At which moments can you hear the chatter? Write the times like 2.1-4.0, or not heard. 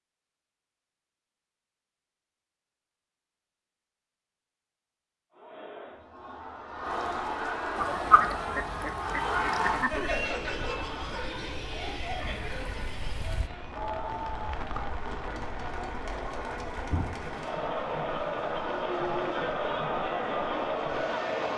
5.3-21.5.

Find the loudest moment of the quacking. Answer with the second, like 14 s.
8 s.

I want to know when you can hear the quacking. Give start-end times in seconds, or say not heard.
7.8-10.2.